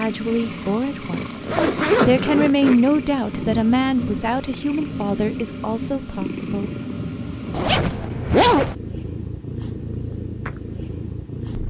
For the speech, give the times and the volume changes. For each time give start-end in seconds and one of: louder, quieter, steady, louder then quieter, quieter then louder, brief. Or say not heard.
0.0-6.8 louder then quieter.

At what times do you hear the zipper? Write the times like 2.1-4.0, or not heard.
1.1-2.8, 7.5-8.8.